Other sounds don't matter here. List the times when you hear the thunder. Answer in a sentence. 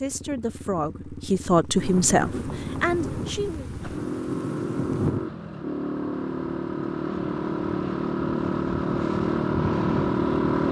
The thunder can be heard from 1.8 to 5.3 s.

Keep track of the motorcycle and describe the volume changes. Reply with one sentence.
The loudness of the motorcycle goes up.